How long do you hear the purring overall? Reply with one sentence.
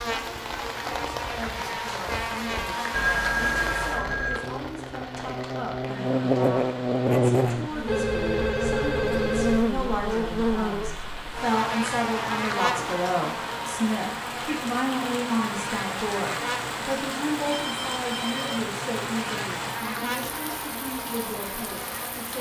You can't hear the purring here.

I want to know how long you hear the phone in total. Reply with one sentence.
The phone can be heard for 4 seconds in total.